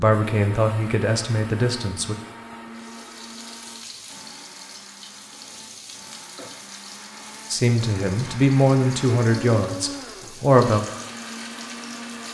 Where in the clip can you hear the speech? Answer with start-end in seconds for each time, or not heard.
0.0-2.1, 7.5-10.8.